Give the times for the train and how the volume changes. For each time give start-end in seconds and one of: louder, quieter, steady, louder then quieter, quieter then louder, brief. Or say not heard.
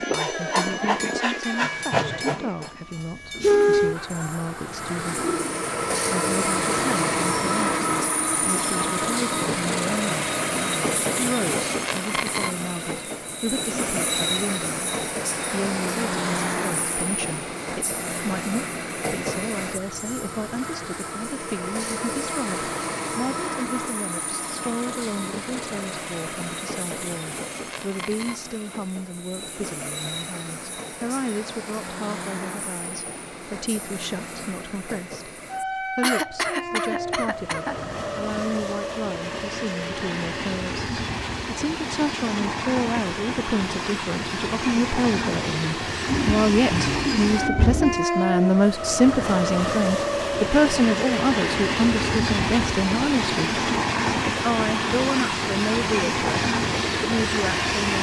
0.0-57.9 quieter then louder.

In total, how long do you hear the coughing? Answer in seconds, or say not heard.
2 s.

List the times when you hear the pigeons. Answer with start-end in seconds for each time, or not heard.
3.3-5.6, 46.0-48.0.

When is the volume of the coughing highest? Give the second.
36 s.